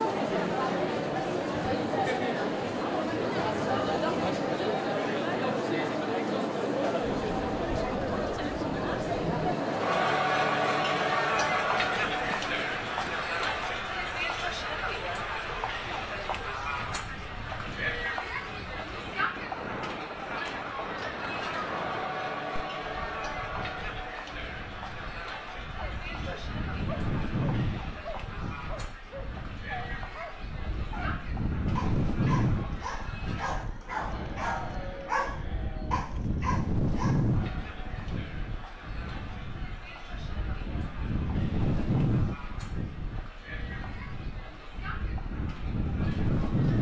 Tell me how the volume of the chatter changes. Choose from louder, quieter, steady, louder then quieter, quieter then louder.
quieter.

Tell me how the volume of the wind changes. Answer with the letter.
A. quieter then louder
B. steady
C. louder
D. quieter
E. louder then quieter
C.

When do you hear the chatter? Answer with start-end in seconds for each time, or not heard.
0.0-46.7.